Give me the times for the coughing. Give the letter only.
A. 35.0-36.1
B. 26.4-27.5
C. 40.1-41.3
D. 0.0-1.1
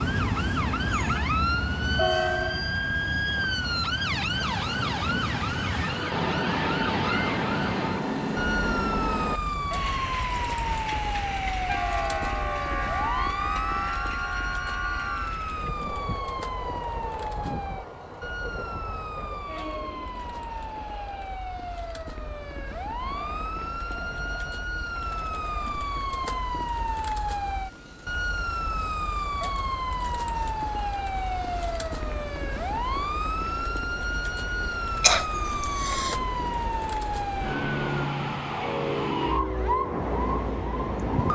A.